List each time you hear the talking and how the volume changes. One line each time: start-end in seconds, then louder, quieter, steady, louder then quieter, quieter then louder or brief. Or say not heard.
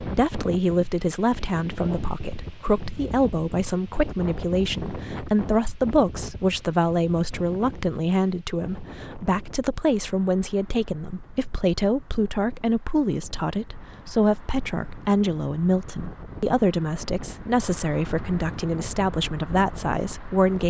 0.0-20.6 steady.